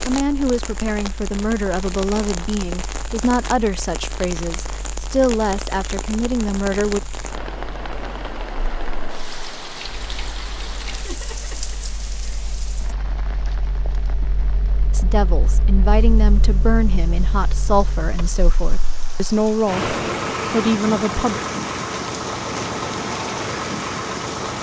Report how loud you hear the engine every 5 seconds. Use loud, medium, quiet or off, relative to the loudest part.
quiet, quiet, quiet, medium, loud.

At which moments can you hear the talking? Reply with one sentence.
You can hear the talking from 0.1 to 7.0 s and from 14.9 to 21.4 s.